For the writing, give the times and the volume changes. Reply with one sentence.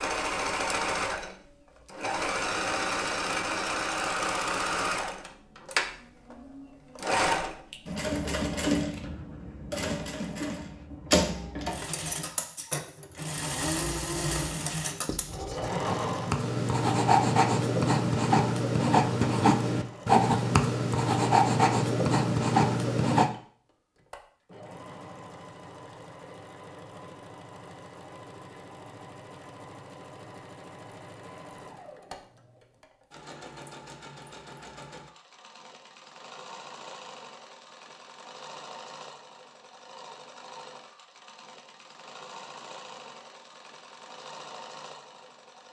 You can hear the writing from 15.1 to 23.3 s, getting louder.